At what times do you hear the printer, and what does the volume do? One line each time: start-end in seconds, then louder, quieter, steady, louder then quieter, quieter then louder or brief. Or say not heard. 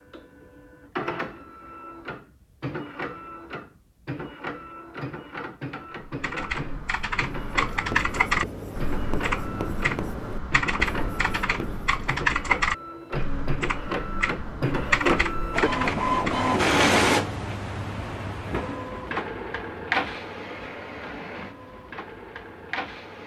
0.0-23.2 louder then quieter.